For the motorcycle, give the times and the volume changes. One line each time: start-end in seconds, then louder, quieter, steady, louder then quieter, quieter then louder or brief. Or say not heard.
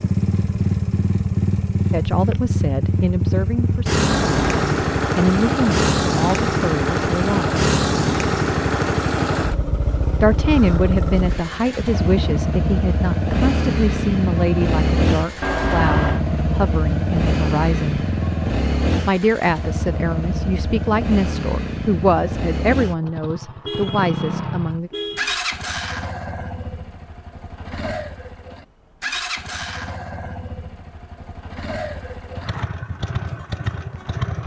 0.0-34.4 quieter.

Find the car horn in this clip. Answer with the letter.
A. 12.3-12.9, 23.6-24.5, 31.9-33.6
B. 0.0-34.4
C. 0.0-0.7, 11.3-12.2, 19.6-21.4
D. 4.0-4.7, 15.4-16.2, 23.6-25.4
D.